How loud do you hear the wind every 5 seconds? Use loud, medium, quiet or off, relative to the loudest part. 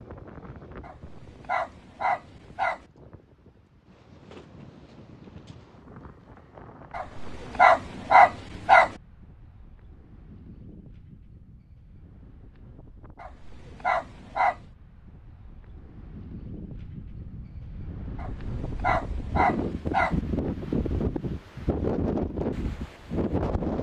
quiet, quiet, quiet, medium, loud.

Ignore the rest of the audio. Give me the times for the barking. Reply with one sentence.
You can hear the barking from 0.8 to 2.8 s, from 7.0 to 8.9 s, from 13.2 to 14.6 s and from 18.1 to 20.1 s.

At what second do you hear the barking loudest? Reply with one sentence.
The volume of the barking peaks at 8 seconds.